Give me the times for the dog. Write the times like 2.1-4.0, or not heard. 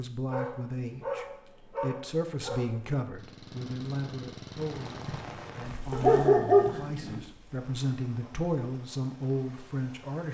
0.3-2.8, 5.9-7.2.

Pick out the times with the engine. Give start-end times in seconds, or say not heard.
3.1-5.2.